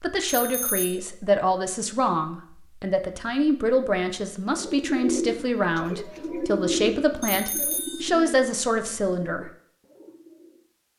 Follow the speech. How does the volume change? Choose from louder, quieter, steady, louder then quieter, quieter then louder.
steady.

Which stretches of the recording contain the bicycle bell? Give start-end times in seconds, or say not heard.
0.2-1.0, 7.2-8.1.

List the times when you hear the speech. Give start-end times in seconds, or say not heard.
0.0-9.5.